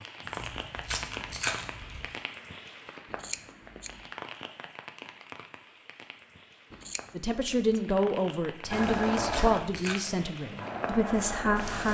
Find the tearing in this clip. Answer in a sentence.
You can hear the tearing from 0.2 to 2.0 s and from 8.7 to 10.1 s.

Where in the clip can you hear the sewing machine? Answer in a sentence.
The sewing machine can be heard from 8.7 to 11.8 s.